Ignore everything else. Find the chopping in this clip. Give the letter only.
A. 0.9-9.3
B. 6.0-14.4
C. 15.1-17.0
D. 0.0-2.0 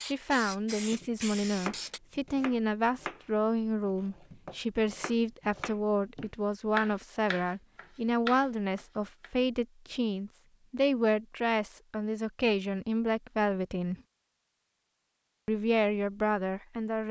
A.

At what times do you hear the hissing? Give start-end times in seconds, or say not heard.
0.0-2.0.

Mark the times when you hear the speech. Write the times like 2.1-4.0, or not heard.
0.0-13.9, 15.4-17.0.